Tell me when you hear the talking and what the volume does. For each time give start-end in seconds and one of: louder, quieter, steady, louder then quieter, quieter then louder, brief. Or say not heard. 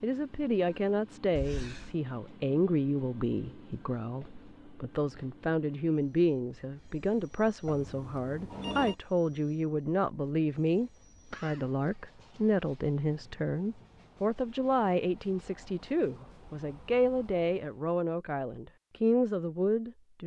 0.0-20.2 steady.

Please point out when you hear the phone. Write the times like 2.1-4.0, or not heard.
7.7-8.9.